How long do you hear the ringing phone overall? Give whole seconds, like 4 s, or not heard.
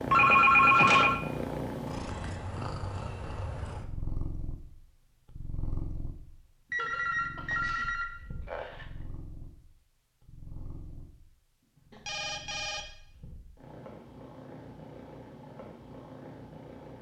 4 s.